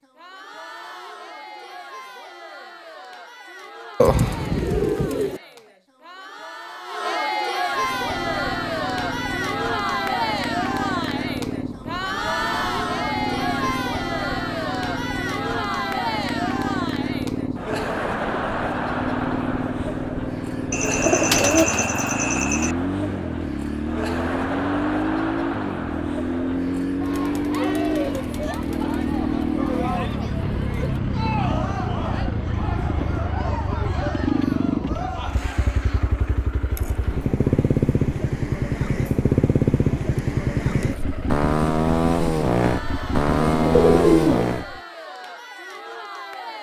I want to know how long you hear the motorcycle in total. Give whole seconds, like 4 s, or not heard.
37 s.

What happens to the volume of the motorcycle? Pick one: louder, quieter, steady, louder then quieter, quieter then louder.
louder.